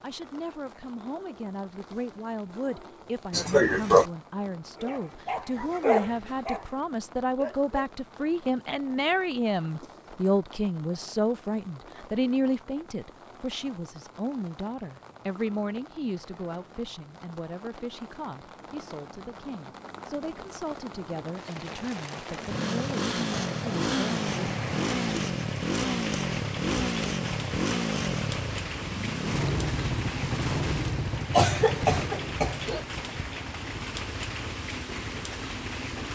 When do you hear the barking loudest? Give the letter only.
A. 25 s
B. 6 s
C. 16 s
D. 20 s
B.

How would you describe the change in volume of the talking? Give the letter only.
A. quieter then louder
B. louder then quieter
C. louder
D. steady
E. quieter
B.